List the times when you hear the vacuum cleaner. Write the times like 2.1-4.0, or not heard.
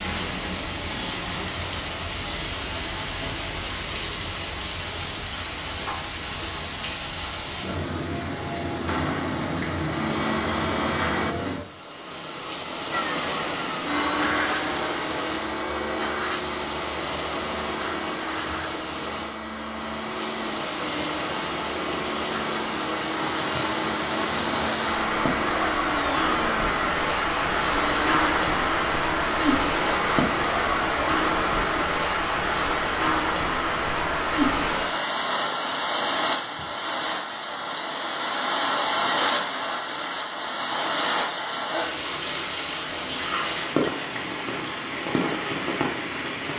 8.8-11.3, 12.9-31.9.